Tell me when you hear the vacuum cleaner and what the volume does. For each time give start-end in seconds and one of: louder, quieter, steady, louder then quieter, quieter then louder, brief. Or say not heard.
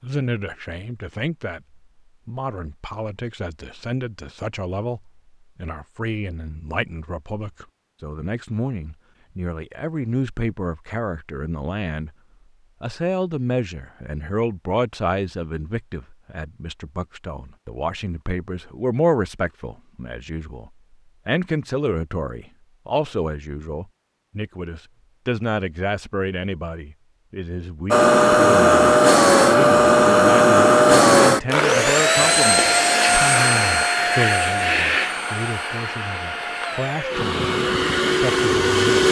27.9-39.0 quieter.